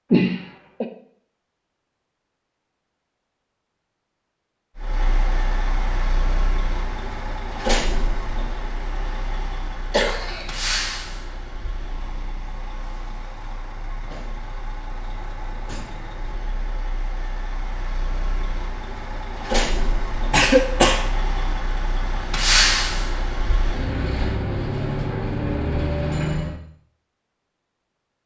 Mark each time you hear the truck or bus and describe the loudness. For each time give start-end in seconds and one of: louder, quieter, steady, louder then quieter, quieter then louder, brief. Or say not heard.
4.8-26.6 quieter then louder.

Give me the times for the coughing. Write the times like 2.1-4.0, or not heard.
0.1-0.8, 9.9-10.6, 20.3-21.1.